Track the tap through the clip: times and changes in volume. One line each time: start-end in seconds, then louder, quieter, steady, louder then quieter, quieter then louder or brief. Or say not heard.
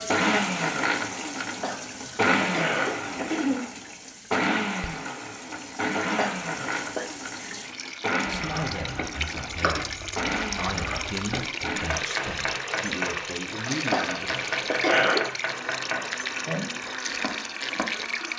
0.0-18.3 louder.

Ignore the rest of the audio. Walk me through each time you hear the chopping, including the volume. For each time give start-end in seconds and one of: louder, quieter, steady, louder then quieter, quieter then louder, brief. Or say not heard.
8.3-17.9 steady.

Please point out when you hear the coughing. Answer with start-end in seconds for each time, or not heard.
1.6-3.6, 6.2-7.2, 13.9-15.2.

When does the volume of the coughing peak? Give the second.
15 s.